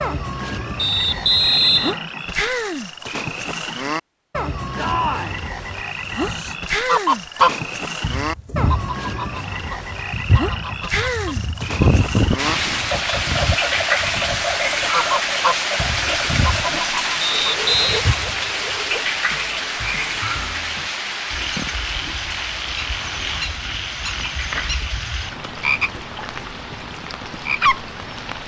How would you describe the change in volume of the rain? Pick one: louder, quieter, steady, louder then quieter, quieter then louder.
quieter.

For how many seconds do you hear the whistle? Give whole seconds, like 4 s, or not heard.
2 s.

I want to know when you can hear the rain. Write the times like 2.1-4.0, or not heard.
12.3-28.4.